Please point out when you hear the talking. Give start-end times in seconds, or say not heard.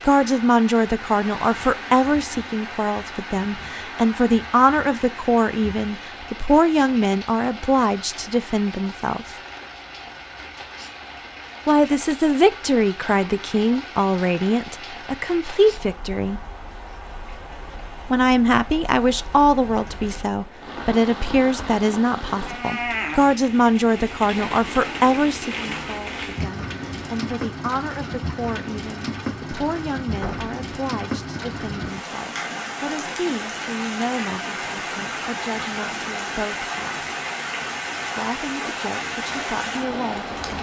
0.0-9.3, 11.7-16.4, 18.1-37.1, 38.1-40.4.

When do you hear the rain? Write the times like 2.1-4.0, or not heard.
0.0-40.5.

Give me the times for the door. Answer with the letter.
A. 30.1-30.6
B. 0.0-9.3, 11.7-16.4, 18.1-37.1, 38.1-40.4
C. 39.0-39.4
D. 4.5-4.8
A.